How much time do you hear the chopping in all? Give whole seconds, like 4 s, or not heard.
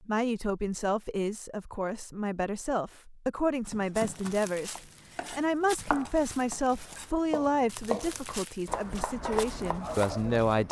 7 s.